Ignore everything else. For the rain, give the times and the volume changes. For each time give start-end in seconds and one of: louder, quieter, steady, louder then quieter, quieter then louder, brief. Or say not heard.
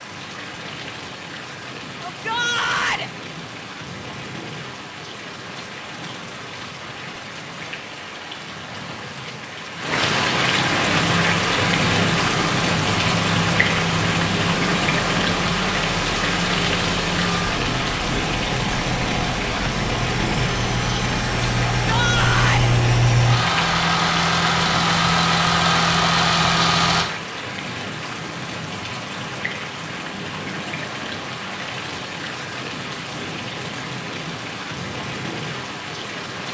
0.0-36.4 louder then quieter.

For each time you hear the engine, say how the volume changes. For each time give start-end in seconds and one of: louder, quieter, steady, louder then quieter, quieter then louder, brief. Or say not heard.
10.9-27.1 louder.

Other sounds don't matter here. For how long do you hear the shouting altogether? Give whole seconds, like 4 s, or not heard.
2 s.